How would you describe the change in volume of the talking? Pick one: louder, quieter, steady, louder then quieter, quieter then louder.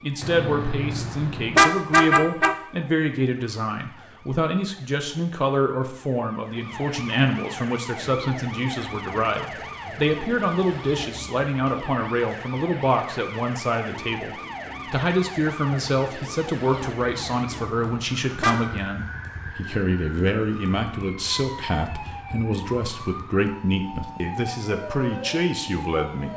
steady.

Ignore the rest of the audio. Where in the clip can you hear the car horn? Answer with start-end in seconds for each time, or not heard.
0.2-2.6, 17.1-18.6.